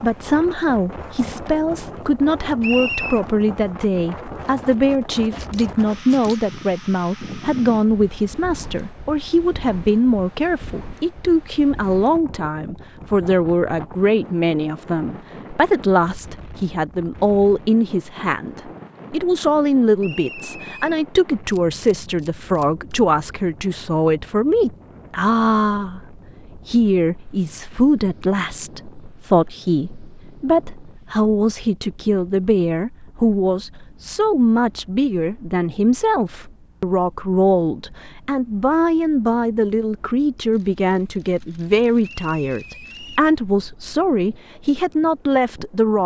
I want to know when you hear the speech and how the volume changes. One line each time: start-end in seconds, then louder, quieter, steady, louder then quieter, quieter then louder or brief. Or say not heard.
0.0-46.0 steady.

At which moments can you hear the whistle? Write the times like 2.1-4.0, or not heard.
2.6-3.2, 20.0-21.0, 42.0-43.3.